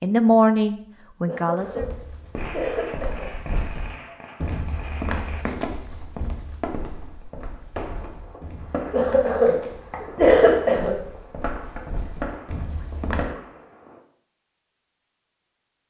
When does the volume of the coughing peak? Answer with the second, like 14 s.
10 s.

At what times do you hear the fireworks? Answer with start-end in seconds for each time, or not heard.
2.4-14.0.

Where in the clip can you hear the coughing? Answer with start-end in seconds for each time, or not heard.
1.2-3.2, 8.9-10.9.